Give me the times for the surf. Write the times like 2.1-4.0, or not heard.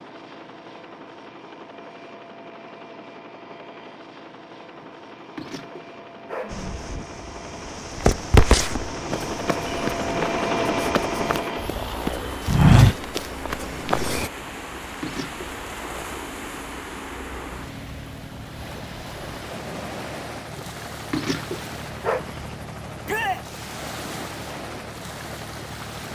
6.5-26.1.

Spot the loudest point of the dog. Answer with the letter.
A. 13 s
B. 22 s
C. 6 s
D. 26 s
B.